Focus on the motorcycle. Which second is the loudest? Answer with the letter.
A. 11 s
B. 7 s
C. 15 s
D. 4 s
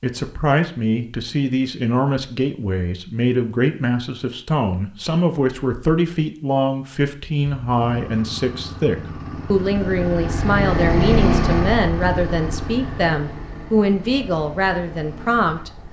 A.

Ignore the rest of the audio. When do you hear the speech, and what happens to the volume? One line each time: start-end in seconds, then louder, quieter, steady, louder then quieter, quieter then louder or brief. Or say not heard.
0.0-15.7 steady.